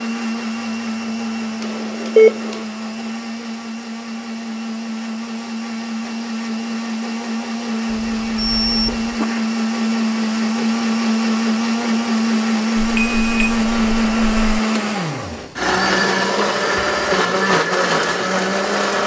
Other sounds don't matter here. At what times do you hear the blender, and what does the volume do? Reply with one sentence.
You can hear the blender from 0.0 to 19.0 s, getting louder.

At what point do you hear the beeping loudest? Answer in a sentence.
The loudest moment of the beeping is at 2 seconds.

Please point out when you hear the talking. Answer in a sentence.
You can't hear the talking here.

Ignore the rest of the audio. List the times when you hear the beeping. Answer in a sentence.
The beeping can be heard from 1.6 to 2.6 s, from 7.9 to 9.2 s and from 12.8 to 14.6 s.